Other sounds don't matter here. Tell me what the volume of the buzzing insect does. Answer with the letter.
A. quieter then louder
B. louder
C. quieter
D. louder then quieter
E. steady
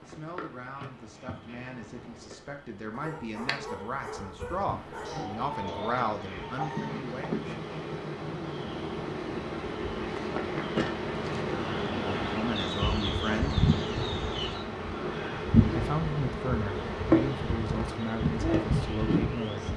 B.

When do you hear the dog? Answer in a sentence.
You can hear the dog from 2.9 to 5.4 s.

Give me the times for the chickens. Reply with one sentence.
You can hear the chickens from 5.0 to 7.3 s and from 12.6 to 14.7 s.